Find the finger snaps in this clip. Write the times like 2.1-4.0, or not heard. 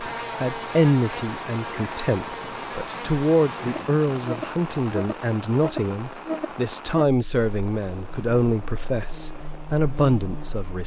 not heard.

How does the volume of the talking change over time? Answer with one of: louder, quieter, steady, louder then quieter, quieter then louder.
steady.